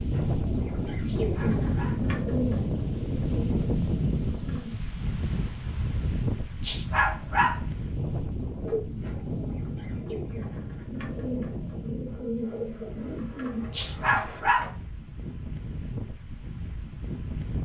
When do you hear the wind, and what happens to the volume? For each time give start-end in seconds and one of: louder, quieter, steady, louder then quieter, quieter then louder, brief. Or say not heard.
0.0-17.5 quieter.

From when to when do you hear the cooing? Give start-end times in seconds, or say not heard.
0.0-4.8, 8.6-14.7.